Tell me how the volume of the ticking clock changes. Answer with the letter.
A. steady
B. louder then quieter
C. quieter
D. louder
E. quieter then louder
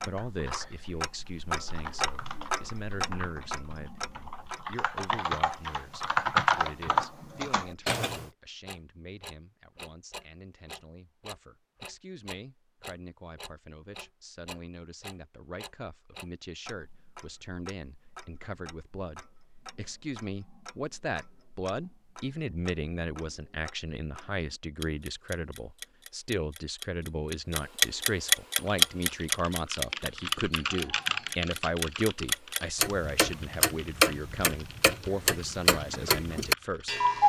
E.